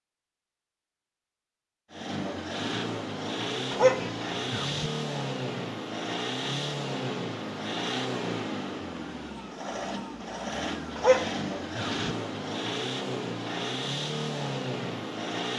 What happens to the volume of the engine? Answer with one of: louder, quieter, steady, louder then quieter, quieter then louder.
steady.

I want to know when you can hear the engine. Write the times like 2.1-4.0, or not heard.
1.9-15.5.